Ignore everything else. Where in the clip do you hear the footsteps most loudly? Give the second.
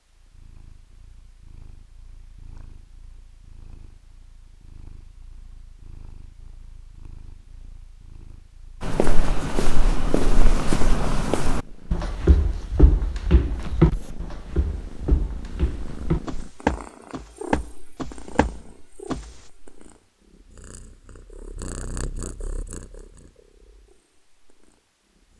14 s.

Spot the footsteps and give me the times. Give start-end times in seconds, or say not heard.
8.8-19.3.